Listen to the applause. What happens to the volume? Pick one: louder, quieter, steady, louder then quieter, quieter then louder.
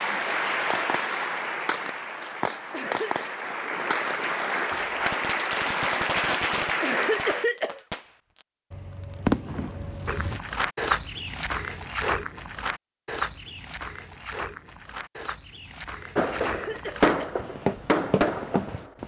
quieter then louder.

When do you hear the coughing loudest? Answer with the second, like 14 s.
7 s.